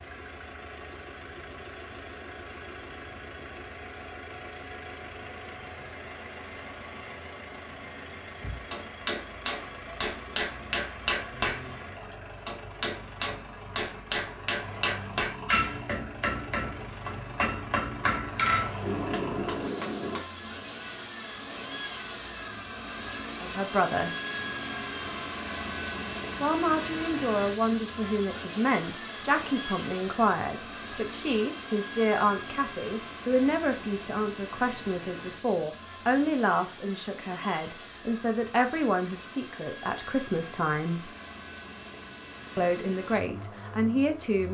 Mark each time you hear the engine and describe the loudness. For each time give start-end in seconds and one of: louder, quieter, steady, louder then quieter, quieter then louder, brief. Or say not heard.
0.0-44.4 louder then quieter.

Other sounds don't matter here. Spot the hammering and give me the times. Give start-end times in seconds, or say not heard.
8.7-20.2.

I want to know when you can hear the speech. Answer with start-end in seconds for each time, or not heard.
23.4-24.1, 26.4-41.1, 42.5-44.4.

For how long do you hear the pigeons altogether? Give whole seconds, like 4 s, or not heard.
not heard.